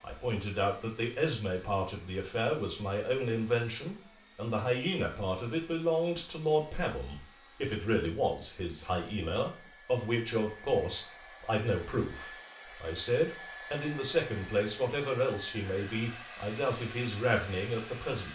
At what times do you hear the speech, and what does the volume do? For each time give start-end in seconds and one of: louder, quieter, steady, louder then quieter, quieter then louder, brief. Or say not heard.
0.0-18.3 steady.